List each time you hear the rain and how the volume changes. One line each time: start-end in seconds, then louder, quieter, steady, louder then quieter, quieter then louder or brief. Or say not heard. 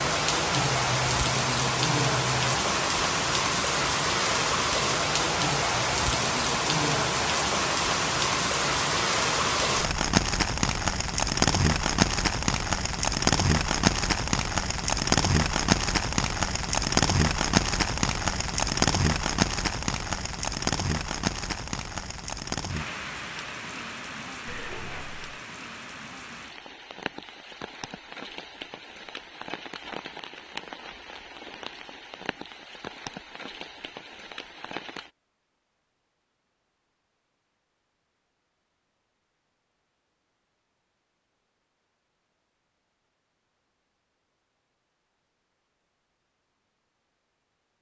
0.0-35.1 quieter.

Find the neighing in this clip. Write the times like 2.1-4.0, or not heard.
0.6-2.5, 24.4-25.2.